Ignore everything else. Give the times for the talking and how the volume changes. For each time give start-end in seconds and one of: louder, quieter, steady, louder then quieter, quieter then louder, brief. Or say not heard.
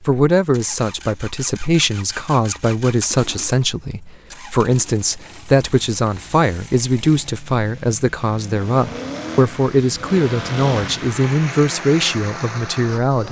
0.0-13.2 steady.